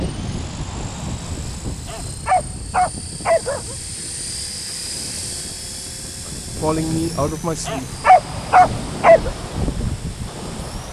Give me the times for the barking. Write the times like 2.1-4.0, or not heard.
1.1-3.8, 6.8-9.3.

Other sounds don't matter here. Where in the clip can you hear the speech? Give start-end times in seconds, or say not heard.
6.2-8.1.